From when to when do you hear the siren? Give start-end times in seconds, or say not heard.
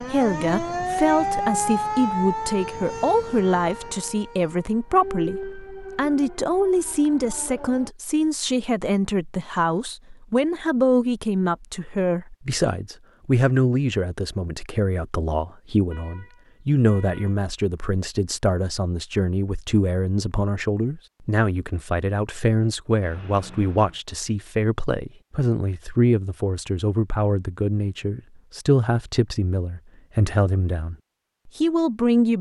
0.0-7.9.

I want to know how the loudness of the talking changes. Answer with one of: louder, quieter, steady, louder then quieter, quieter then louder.
steady.